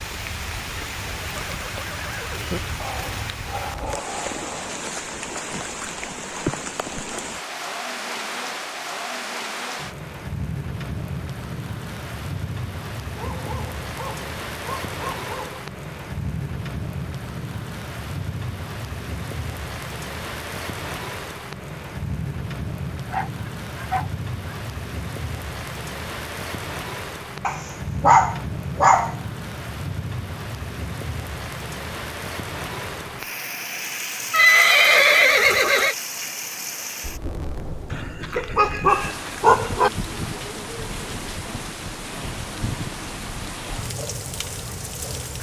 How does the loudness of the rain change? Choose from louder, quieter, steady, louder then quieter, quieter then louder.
steady.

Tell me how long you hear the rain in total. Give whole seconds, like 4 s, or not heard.
45 s.